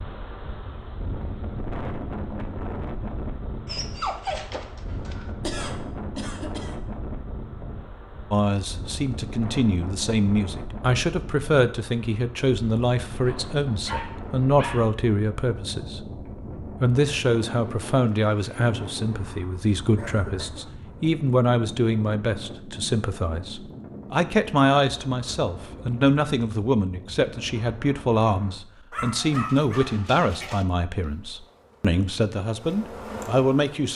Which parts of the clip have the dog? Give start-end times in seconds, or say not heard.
3.6-5.3, 13.2-14.9, 28.9-30.6.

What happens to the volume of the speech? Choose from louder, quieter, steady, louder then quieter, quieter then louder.
steady.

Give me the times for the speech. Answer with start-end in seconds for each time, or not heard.
8.3-33.9.